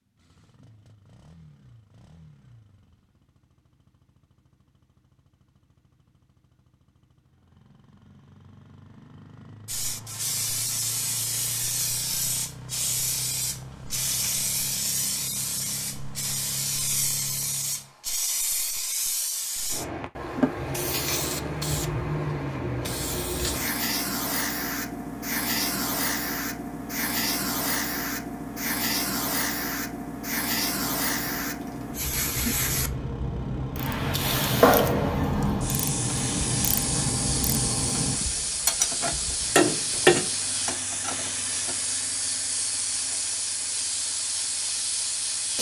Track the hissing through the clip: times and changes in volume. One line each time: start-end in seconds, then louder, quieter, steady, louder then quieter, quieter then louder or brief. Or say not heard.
9.7-45.5 steady.